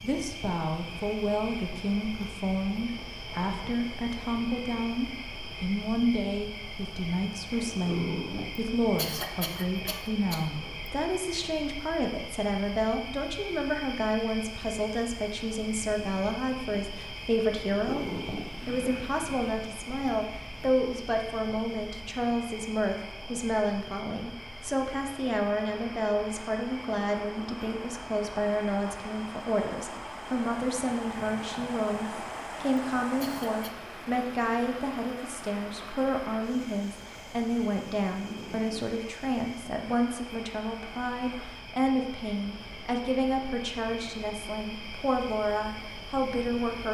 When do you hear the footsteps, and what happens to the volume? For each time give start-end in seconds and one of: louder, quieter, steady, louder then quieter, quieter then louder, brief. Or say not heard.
not heard.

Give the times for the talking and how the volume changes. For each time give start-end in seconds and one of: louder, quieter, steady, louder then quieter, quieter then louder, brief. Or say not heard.
0.0-18.1 steady
18.6-46.8 steady.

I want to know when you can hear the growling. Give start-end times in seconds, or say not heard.
7.5-8.8, 17.7-19.1, 38.1-39.0.